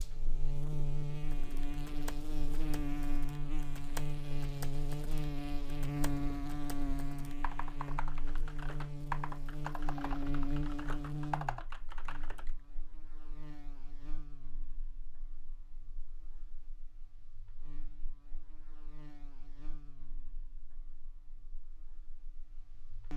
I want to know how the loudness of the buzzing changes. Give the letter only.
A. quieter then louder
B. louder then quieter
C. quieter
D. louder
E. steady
C.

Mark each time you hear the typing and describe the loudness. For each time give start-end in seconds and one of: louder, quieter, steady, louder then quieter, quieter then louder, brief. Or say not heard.
1.2-12.5 louder.